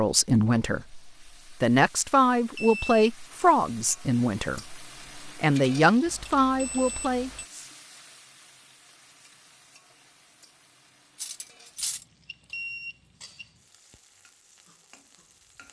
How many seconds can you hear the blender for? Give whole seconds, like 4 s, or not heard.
not heard.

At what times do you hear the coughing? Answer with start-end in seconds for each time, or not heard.
not heard.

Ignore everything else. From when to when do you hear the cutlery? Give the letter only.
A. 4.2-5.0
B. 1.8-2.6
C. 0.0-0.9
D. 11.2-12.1
D.